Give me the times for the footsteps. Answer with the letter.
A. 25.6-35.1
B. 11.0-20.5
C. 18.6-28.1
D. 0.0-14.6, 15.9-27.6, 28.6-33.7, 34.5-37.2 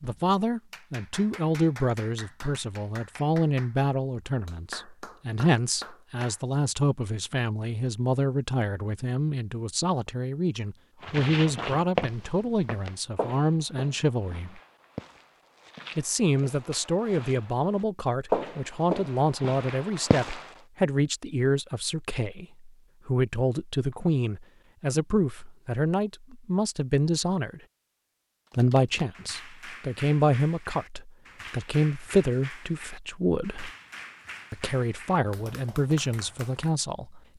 B.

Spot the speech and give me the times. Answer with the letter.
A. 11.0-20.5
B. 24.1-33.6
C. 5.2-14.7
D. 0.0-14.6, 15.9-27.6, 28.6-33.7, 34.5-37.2
D.